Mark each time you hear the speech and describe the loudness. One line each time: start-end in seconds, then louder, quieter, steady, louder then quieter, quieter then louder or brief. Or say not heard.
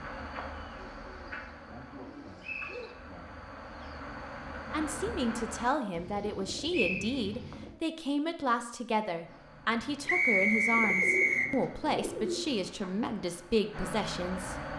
4.7-14.6 steady.